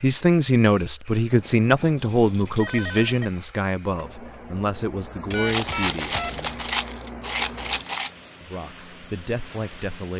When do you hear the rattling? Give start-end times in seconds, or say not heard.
1.9-3.0, 5.5-8.2.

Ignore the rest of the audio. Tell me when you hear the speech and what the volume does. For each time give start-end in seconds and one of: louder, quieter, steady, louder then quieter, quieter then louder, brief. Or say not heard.
0.0-6.7 quieter
8.4-10.1 brief.